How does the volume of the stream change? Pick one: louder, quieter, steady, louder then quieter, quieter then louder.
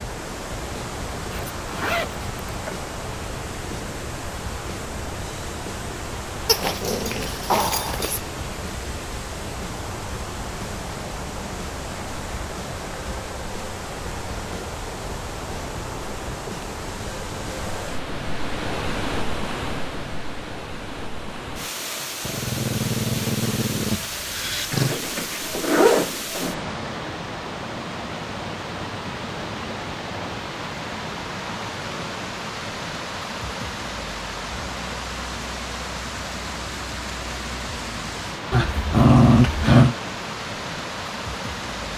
steady.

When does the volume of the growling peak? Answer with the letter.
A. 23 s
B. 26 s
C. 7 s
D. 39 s
D.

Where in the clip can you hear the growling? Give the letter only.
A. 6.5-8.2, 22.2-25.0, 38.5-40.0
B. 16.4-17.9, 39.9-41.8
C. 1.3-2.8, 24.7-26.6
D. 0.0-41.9
A.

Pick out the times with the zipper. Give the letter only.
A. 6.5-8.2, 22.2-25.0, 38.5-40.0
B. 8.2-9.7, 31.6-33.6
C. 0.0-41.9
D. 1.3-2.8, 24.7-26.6
D.